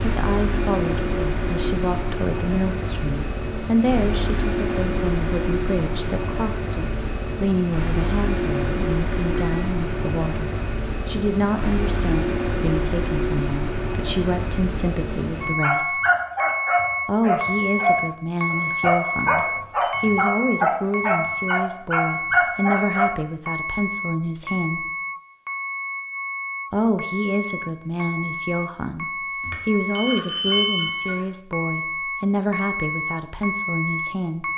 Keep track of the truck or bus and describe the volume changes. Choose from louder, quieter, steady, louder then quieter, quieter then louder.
steady.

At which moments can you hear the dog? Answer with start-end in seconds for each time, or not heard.
15.6-23.1.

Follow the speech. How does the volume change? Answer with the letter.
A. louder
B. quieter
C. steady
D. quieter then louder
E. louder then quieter
C.